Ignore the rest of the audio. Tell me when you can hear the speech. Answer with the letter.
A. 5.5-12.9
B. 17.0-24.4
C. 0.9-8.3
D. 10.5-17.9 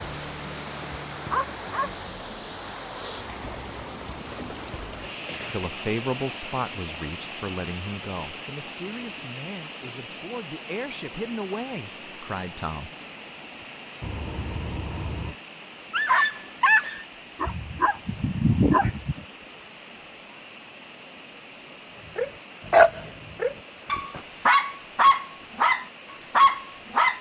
A.